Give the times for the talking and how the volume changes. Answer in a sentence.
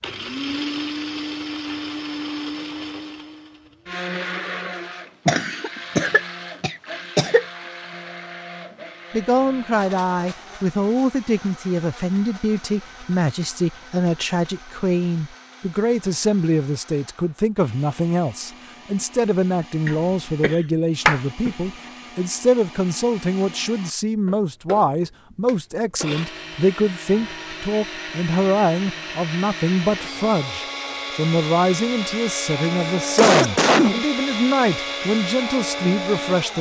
The talking can be heard from 9.1 to 36.5 s, at a steady volume.